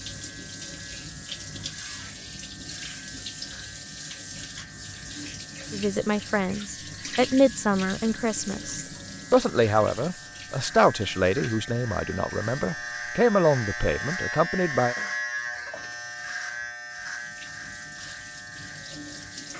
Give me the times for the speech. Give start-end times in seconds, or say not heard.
5.7-14.9.